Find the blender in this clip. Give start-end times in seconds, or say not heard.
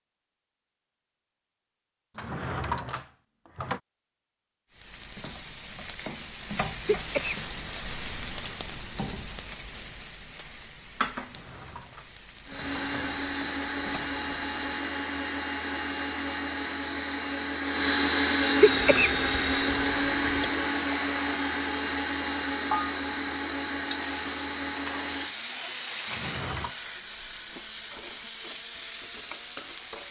12.4-30.0.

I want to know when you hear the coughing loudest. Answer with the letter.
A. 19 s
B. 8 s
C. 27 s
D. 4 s
A.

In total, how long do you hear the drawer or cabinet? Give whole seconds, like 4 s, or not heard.
4 s.